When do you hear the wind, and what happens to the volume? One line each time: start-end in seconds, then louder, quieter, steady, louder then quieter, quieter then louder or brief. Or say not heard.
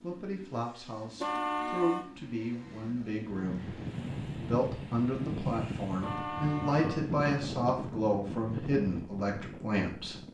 3.1-10.2 steady.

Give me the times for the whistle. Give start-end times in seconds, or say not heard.
not heard.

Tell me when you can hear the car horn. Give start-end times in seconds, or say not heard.
1.2-2.0, 6.0-7.2.